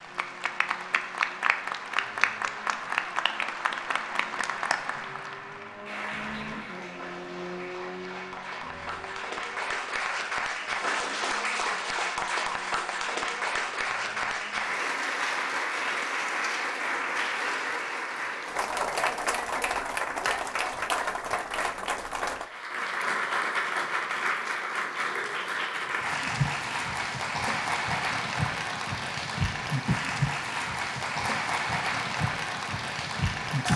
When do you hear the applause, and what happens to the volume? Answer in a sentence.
The applause can be heard from 0.0 to 33.7 s, at a steady volume.